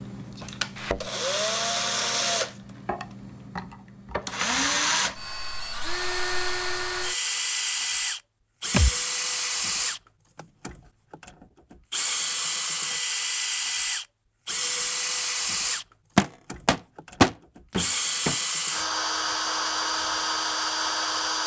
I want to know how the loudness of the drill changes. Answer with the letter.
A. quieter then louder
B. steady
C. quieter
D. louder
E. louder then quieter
B.